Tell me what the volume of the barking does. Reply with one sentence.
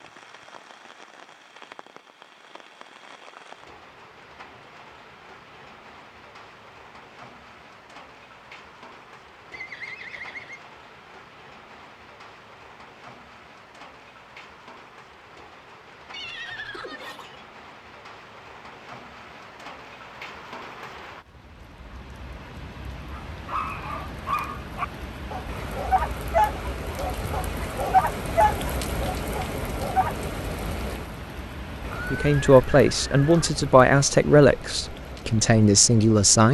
The loudness of the barking goes up, then down.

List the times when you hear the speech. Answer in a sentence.
The speech can be heard from 31.9 to 36.4 s.